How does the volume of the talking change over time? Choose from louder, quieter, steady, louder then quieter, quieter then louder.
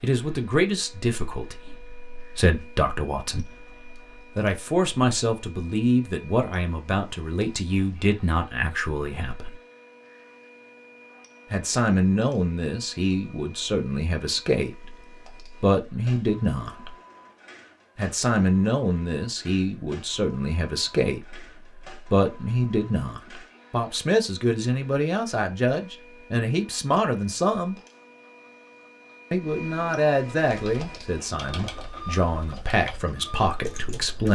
steady.